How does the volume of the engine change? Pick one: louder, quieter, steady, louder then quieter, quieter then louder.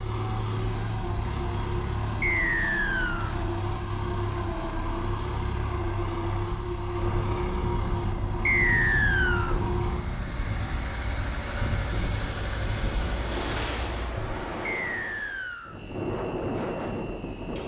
quieter.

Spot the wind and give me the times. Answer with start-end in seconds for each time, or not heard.
7.0-17.6.